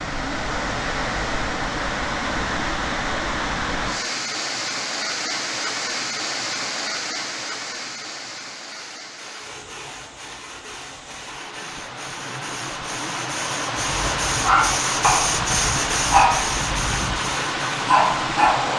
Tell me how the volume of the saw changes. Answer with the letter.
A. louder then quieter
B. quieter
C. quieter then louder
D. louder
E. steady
D.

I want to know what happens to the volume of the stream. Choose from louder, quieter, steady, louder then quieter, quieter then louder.
quieter then louder.